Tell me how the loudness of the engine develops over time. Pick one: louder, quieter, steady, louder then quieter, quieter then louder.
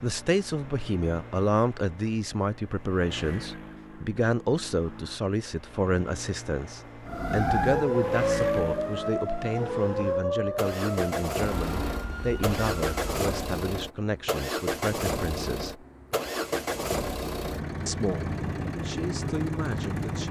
louder.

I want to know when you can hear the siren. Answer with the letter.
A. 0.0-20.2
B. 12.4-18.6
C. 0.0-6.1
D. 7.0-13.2
D.